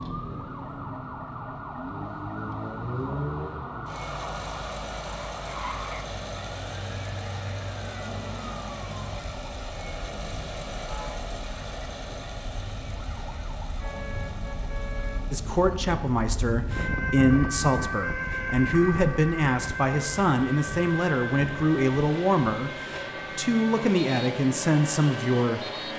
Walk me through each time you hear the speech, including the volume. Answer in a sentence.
You can hear the speech from 15.3 to 25.7 s, at a steady volume.